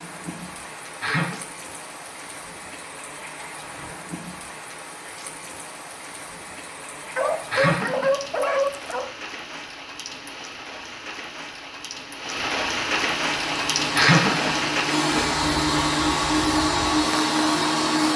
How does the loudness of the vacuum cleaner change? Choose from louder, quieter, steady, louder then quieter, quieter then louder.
louder.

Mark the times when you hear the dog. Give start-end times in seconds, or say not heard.
7.2-9.1.